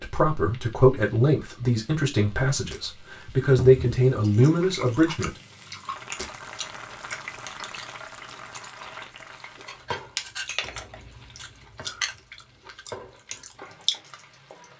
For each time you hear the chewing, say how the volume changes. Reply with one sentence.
You can hear the chewing from 4.2 to 14.2 s, getting quieter then louder.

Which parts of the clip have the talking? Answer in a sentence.
The talking can be heard from 0.0 to 5.3 s.